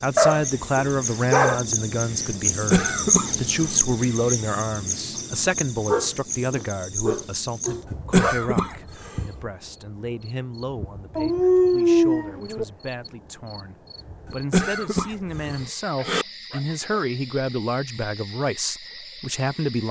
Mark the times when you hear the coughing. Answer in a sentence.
The coughing can be heard from 2.7 to 3.8 s, from 7.9 to 9.2 s and from 14.3 to 16.2 s.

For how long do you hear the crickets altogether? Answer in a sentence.
You can hear the crickets for 20 seconds altogether.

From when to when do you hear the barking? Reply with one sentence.
The barking can be heard from 0.1 to 1.6 s, from 5.8 to 8.3 s, from 11.2 to 12.7 s and from 15.9 to 16.9 s.